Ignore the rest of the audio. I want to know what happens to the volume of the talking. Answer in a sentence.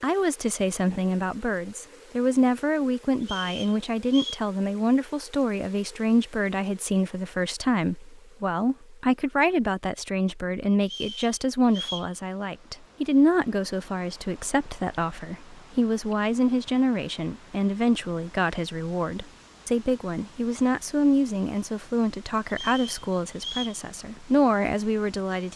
The volume of the talking stays about the same.